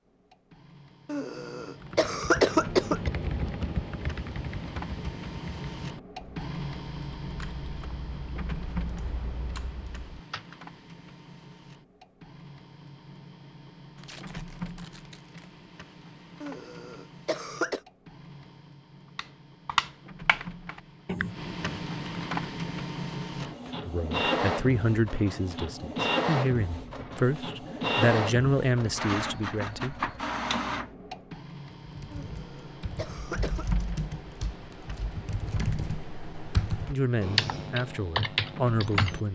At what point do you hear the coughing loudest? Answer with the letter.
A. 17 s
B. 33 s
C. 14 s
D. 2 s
D.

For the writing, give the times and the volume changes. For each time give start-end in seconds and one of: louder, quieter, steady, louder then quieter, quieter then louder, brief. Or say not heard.
not heard.